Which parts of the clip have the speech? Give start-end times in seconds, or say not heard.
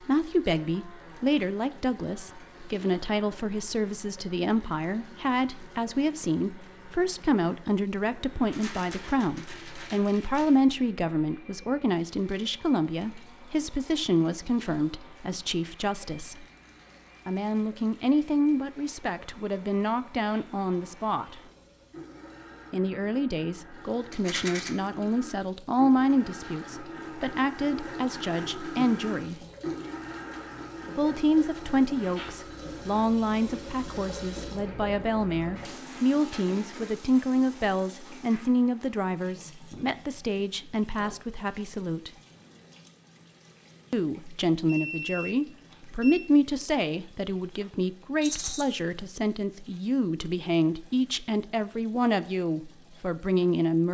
0.1-16.4, 17.2-21.4, 22.7-29.4, 30.9-42.1, 43.9-53.8.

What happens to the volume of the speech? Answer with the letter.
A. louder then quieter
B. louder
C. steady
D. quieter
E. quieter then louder
C.